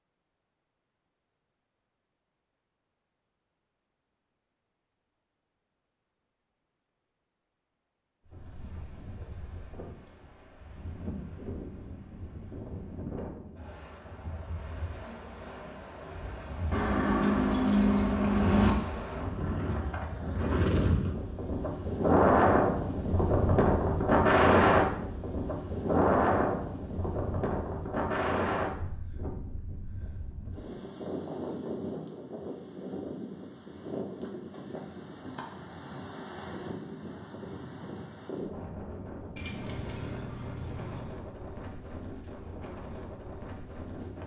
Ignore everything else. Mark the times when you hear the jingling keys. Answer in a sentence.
You can hear the jingling keys from 16.7 to 18.8 s and from 39.4 to 41.0 s.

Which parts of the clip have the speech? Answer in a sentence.
The speech can't be heard in this clip.